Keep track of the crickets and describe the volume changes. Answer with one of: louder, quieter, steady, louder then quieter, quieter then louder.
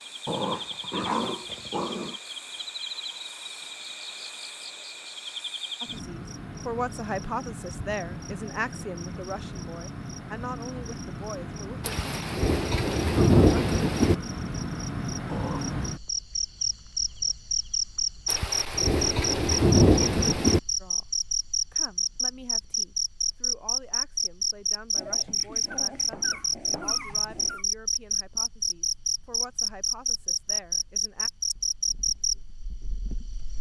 louder.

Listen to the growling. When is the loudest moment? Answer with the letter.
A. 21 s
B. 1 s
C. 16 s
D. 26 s
B.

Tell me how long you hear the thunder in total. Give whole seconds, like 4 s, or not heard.
5 s.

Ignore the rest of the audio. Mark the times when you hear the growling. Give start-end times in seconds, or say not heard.
0.2-2.1, 15.2-15.8, 24.9-27.6.